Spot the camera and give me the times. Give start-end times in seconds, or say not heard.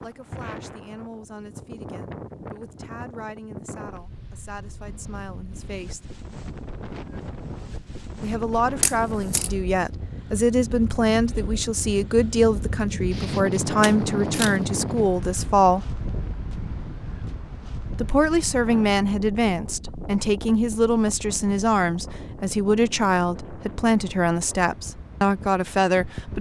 8.8-9.5, 13.8-14.6.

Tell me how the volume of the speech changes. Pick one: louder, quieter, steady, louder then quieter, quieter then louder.
louder.